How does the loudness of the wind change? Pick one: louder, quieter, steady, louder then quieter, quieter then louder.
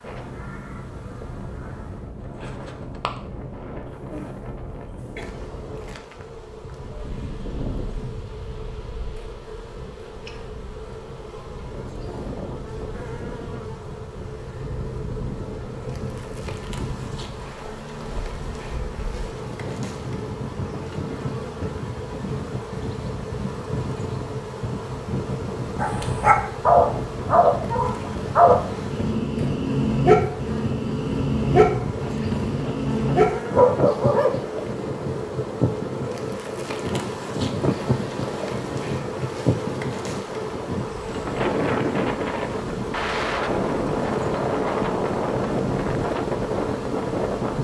louder.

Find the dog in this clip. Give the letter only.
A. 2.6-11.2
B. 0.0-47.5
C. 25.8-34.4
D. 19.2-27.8
C.